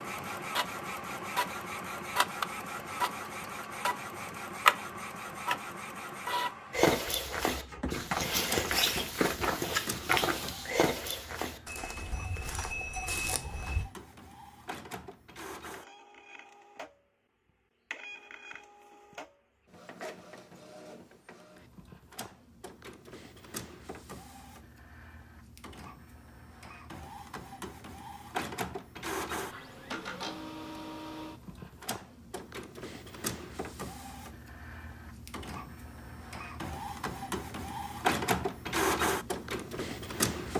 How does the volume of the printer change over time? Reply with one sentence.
The loudness of the printer goes down, then up.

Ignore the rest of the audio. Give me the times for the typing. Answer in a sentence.
The typing can't be heard in this clip.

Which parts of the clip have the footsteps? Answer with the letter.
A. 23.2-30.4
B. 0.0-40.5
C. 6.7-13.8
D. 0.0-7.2
C.